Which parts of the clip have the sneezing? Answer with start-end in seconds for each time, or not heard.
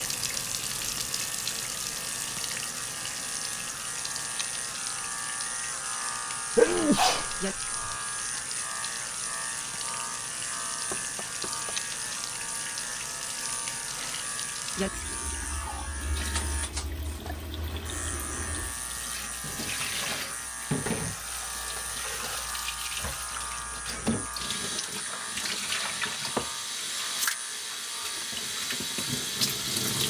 6.5-8.0.